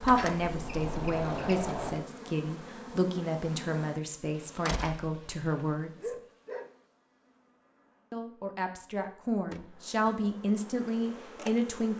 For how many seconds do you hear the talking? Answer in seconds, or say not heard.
10 s.